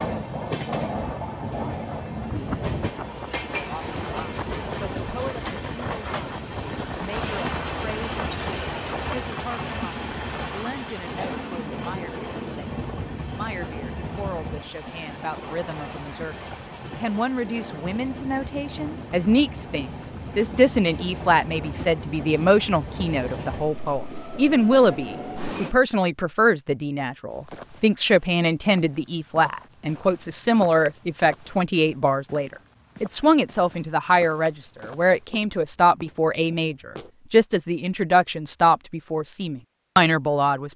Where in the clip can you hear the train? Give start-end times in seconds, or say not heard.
0.0-25.8.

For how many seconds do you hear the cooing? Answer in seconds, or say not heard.
not heard.